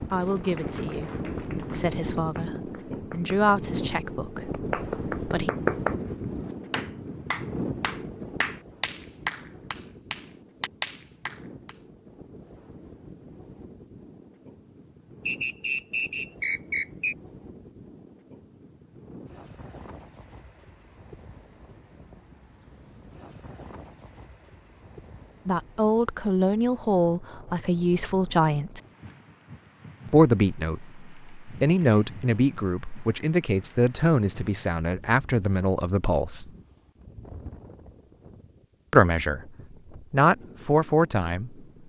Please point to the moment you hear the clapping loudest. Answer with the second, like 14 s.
6 s.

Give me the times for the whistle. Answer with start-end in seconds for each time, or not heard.
15.2-17.1.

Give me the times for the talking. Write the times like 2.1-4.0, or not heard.
0.1-5.5, 25.4-28.8, 30.1-36.5, 38.9-39.5, 40.1-41.5.